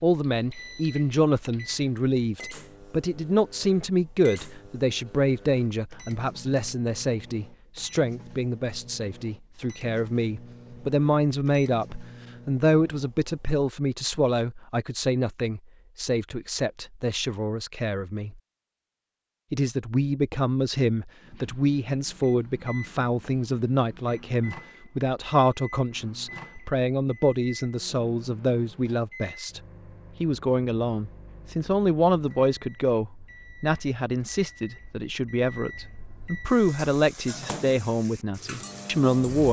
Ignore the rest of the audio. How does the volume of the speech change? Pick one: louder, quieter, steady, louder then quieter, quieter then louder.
steady.